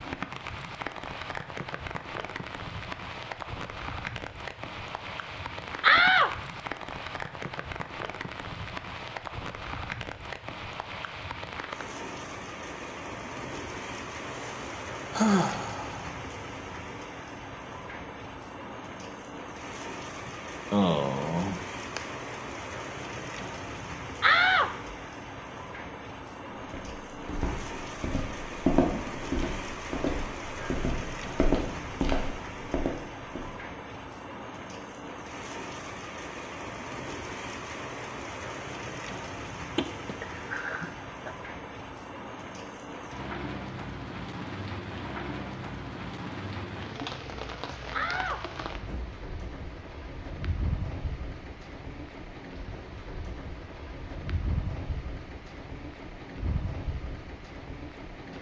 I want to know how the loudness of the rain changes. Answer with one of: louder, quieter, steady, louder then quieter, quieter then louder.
steady.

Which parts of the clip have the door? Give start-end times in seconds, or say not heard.
5.8-6.3, 24.2-24.9, 47.9-49.1.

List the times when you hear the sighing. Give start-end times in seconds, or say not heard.
14.3-16.1, 20.2-22.0, 39.8-41.3.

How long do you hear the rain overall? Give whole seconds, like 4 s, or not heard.
58 s.